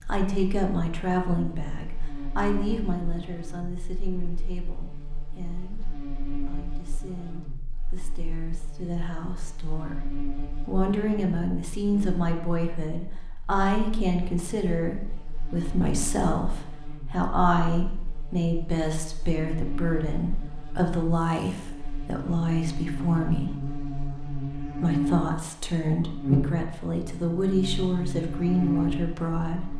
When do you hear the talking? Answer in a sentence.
The talking can be heard from 0.1 to 10.0 s, from 10.7 to 23.5 s and from 24.8 to 29.7 s.